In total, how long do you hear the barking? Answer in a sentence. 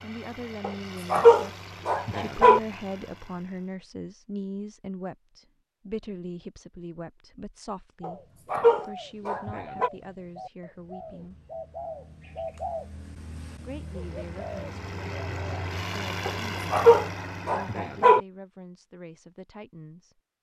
You can hear the barking for 6 seconds altogether.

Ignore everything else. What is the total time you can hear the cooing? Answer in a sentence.
You can hear the cooing for 8 seconds altogether.